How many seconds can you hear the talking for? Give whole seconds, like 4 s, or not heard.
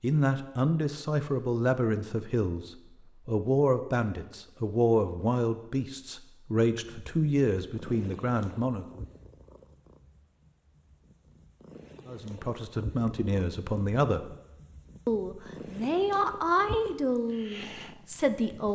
15 s.